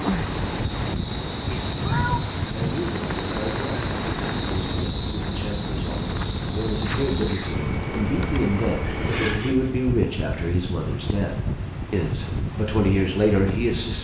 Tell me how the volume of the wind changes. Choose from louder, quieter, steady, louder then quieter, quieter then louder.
steady.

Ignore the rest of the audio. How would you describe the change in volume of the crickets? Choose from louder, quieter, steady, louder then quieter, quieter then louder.
steady.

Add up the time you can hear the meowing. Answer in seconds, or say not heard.
2 s.